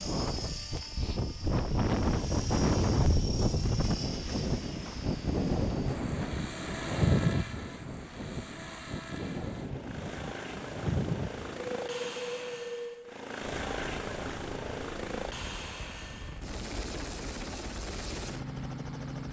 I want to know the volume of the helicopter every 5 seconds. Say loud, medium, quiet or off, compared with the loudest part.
loud, medium, loud, loud.